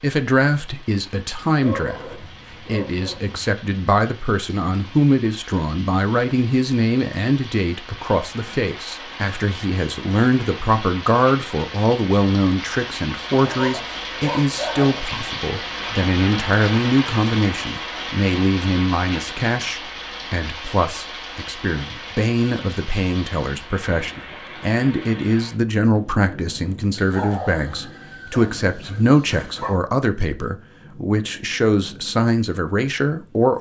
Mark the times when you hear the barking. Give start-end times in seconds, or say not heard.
1.6-3.5, 13.3-15.0, 26.9-29.8.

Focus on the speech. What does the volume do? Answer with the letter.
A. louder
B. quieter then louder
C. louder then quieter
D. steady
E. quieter
D.